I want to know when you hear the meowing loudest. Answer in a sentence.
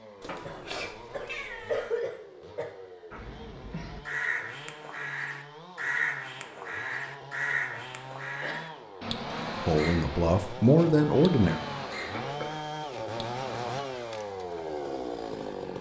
The volume of the meowing peaks at 1 second.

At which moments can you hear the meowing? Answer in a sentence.
You can hear the meowing from 0.2 to 1.9 s.